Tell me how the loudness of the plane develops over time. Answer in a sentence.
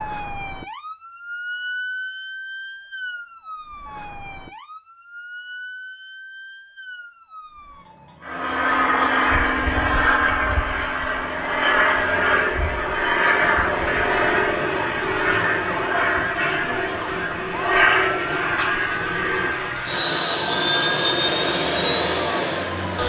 The loudness of the plane stays about the same.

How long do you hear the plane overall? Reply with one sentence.
You can hear the plane for 15 seconds altogether.